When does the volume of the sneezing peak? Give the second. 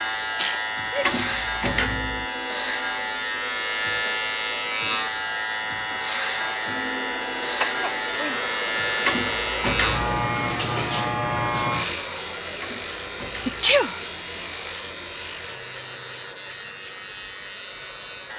14 s.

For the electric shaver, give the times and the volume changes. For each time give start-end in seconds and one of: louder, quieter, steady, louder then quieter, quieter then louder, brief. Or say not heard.
0.0-18.3 quieter.